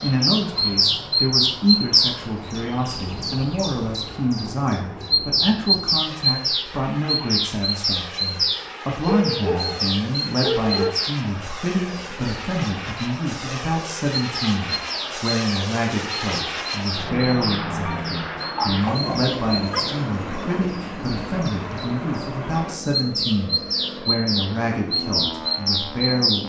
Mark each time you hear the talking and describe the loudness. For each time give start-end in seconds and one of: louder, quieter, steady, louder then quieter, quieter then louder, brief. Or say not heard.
0.0-26.4 steady.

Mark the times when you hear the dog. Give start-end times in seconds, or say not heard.
9.1-10.9, 17.9-19.8.